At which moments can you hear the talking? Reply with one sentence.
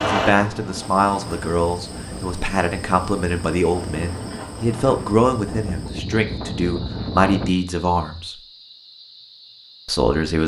The talking can be heard from 0.0 to 8.4 s and from 9.8 to 10.4 s.